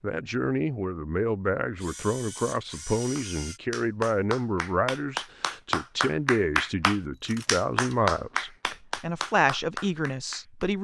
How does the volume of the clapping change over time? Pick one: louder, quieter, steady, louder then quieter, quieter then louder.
louder then quieter.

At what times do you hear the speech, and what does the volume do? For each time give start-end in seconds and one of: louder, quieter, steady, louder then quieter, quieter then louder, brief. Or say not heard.
0.0-10.7 steady.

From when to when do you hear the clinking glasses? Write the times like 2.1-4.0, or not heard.
not heard.